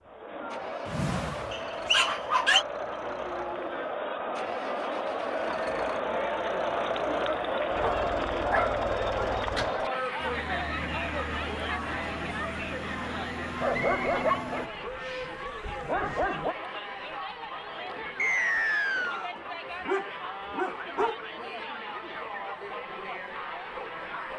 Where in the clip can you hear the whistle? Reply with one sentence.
You can hear the whistle from 1.5 to 2.6 s, from 13.7 to 14.1 s and from 18.1 to 19.3 s.